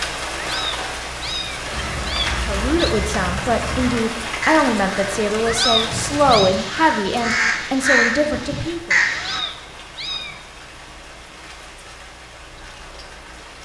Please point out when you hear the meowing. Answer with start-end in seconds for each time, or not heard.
0.3-3.0, 5.5-6.5, 9.1-10.4.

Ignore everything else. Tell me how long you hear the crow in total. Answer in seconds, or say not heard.
8 s.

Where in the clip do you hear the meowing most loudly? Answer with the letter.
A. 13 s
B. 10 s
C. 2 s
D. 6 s
D.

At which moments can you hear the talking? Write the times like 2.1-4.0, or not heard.
2.3-8.9.